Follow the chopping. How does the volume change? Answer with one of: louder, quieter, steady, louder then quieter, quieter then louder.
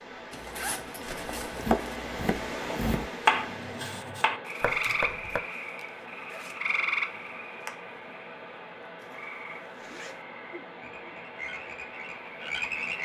louder then quieter.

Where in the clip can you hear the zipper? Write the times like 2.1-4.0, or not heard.
0.3-2.0, 6.2-6.7, 8.9-10.2.